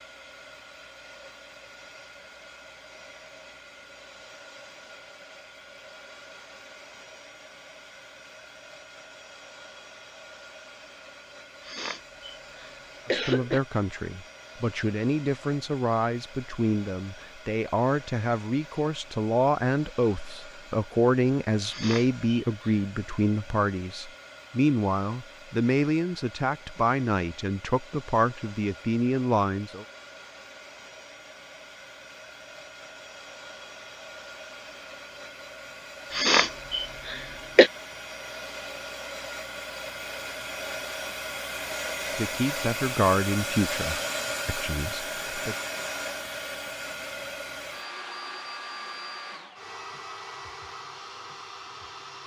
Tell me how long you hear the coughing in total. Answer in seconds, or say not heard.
5 s.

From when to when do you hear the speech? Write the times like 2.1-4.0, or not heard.
13.1-29.9, 42.1-45.5.